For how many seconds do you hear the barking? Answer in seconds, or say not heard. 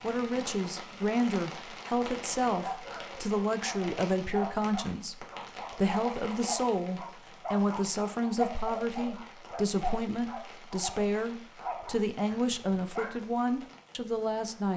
11 s.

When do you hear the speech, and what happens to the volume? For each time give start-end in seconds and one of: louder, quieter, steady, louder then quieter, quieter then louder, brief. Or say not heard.
0.0-14.7 steady.